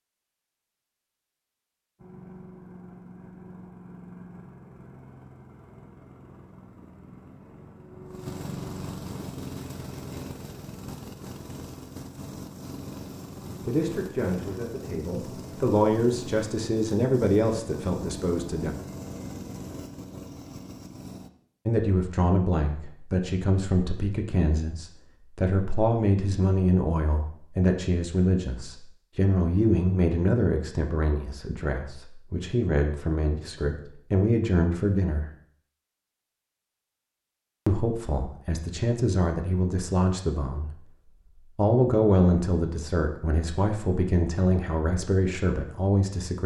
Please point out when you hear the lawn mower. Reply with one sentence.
The lawn mower can be heard from 1.9 to 21.3 s.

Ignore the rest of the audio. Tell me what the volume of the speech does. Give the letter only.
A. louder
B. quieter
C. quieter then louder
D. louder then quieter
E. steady
E.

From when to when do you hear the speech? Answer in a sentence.
The speech can be heard from 13.7 to 18.7 s, from 21.6 to 35.3 s, from 37.6 to 40.9 s and from 41.5 to 46.4 s.